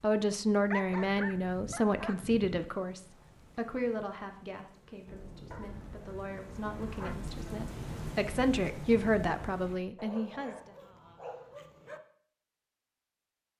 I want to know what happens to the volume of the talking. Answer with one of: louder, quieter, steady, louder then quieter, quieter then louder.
quieter then louder.